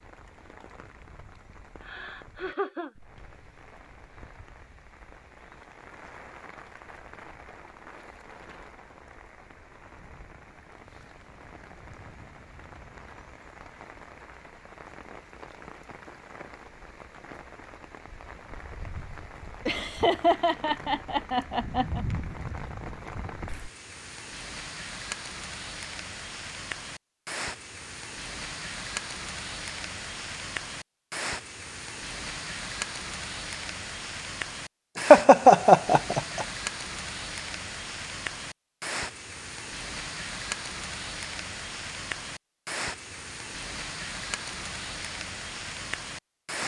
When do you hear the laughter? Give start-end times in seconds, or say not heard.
1.8-2.9, 19.6-22.1, 35.0-36.5.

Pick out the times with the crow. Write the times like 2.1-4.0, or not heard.
not heard.